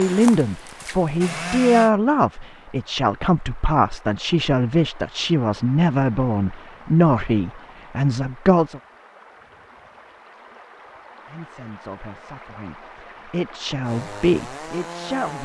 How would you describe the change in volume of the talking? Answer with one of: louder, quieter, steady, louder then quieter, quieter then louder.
quieter.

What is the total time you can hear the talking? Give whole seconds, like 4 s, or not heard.
13 s.